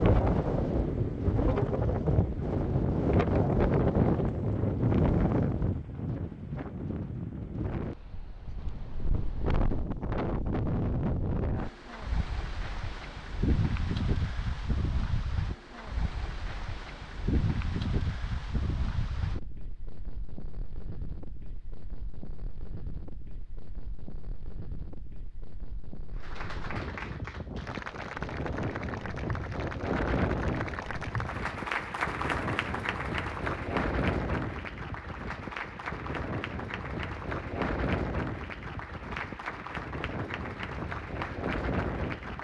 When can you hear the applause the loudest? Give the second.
32 s.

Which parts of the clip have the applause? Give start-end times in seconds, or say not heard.
26.1-42.3.